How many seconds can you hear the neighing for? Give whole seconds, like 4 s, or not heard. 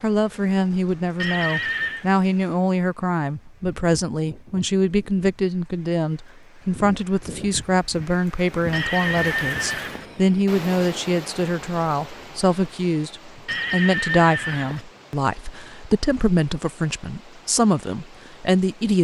4 s.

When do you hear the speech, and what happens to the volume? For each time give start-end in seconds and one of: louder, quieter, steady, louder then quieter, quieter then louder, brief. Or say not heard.
0.0-18.9 steady.